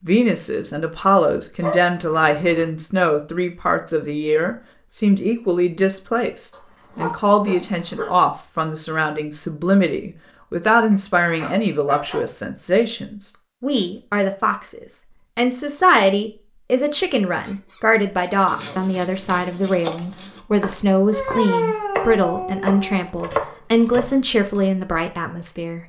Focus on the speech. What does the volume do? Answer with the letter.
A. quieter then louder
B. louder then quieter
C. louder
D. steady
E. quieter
D.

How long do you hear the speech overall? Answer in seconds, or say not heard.
26 s.